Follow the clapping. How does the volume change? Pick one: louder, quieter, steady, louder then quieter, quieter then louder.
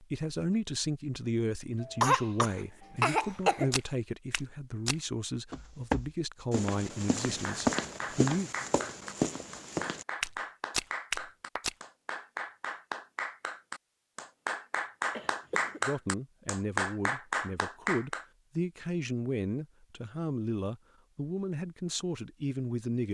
louder.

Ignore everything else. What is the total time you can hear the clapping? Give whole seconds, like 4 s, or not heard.
11 s.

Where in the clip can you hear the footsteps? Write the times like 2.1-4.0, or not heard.
3.2-11.8.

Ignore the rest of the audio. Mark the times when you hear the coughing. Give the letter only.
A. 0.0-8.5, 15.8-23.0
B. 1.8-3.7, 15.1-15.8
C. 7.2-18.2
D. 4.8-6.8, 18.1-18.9
B.